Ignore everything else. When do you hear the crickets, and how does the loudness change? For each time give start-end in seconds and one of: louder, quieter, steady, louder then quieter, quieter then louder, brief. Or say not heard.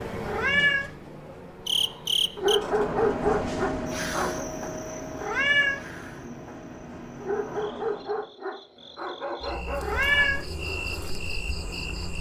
0.0-12.1 quieter then louder.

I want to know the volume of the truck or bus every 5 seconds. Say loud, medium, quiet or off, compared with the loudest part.
loud, medium, off.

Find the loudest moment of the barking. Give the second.
3 s.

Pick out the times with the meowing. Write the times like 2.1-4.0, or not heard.
0.2-0.9, 5.2-5.8, 9.8-10.4.